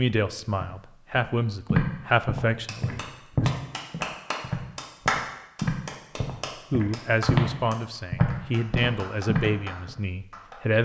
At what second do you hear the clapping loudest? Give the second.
5 s.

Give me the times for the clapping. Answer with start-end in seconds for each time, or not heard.
2.6-10.6.